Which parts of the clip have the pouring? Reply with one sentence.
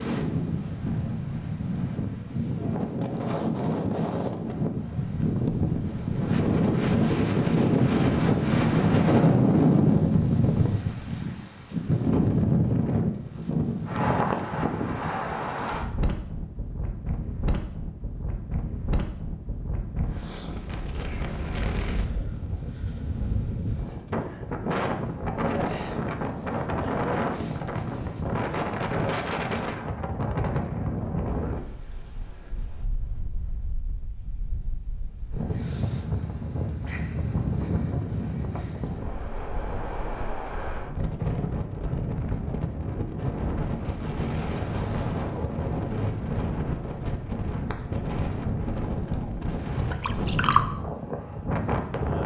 The pouring can be heard from 49.9 to 50.6 s.